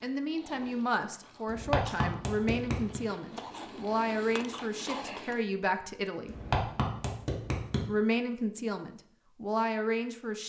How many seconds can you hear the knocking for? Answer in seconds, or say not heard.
3 s.